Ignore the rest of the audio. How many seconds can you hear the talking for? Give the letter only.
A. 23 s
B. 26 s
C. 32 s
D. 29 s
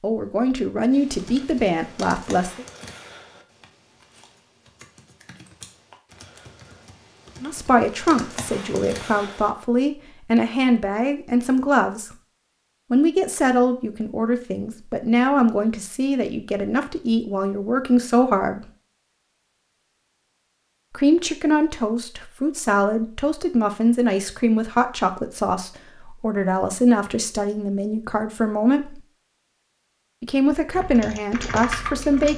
A.